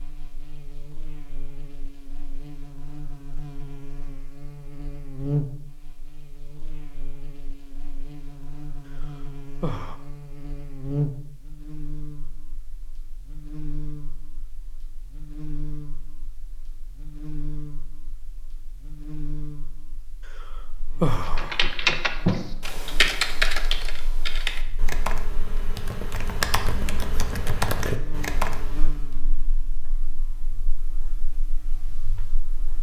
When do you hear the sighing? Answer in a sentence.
The sighing can be heard from 9.0 to 9.9 s and from 20.4 to 21.8 s.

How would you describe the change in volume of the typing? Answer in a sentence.
The loudness of the typing goes down, then up.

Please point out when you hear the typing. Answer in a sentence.
You can hear the typing from 21.2 to 29.1 s.